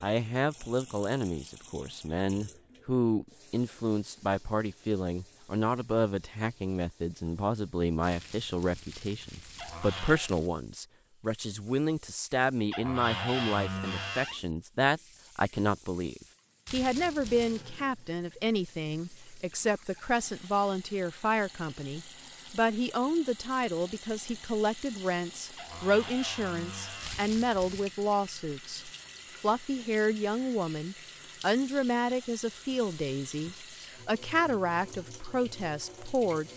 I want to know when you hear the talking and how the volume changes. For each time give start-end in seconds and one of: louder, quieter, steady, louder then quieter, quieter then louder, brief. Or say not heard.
0.0-36.5 steady.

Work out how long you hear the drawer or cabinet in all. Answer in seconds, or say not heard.
4 s.